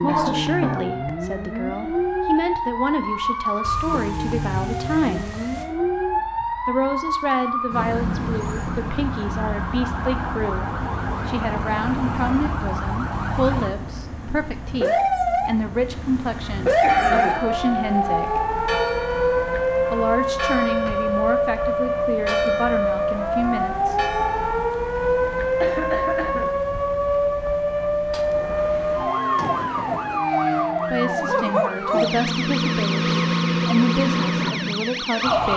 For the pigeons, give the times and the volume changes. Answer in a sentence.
You can't hear the pigeons here.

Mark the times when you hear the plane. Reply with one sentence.
The plane can't be heard in this clip.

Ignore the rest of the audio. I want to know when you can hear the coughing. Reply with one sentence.
The coughing can be heard from 0.1 to 0.8 s, from 16.6 to 17.4 s and from 25.6 to 26.6 s.